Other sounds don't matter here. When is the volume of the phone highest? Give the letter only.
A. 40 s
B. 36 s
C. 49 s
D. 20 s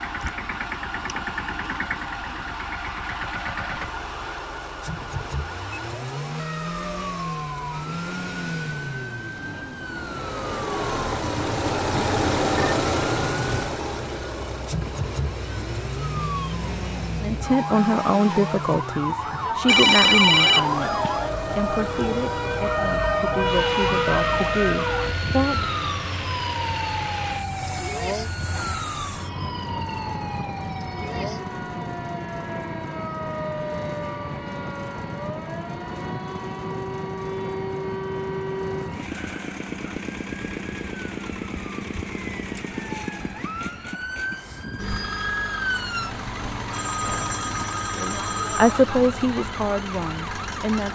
D.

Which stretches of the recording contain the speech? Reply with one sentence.
The speech can be heard from 17.2 to 25.6 s and from 48.0 to 50.8 s.